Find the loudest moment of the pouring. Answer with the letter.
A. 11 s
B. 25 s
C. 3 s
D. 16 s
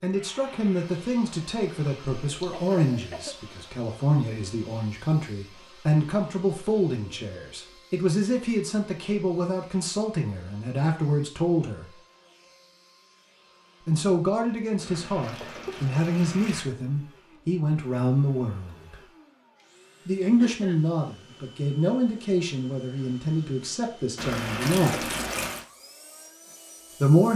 B.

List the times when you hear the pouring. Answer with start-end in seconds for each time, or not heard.
1.8-2.6, 14.8-16.6, 24.1-25.6.